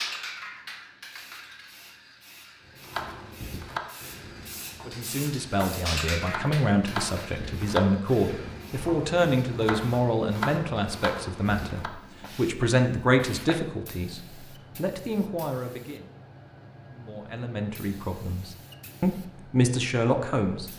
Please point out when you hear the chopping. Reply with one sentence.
The chopping can be heard from 2.8 to 11.9 s.